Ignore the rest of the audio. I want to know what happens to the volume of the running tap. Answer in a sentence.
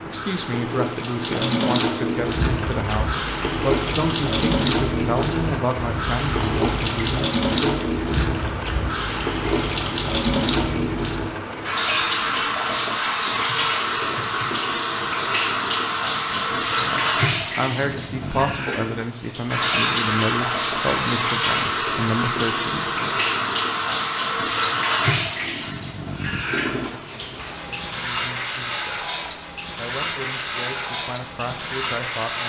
The loudness of the running tap stays about the same.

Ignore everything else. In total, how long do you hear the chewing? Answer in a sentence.
You can hear the chewing for 9 seconds altogether.